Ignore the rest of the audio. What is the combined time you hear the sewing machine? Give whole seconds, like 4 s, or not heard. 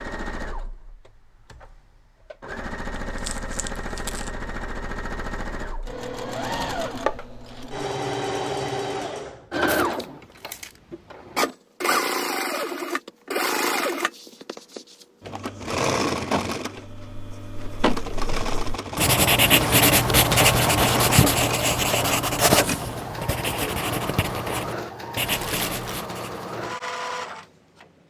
28 s.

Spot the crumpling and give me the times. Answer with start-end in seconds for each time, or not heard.
3.0-4.3, 9.7-10.8, 25.3-26.0.